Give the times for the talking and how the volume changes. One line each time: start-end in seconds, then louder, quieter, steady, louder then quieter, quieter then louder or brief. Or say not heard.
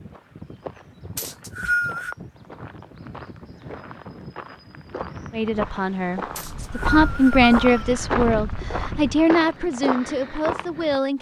5.3-11.1 louder then quieter.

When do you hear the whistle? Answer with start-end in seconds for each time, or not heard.
1.1-2.1, 6.3-7.8.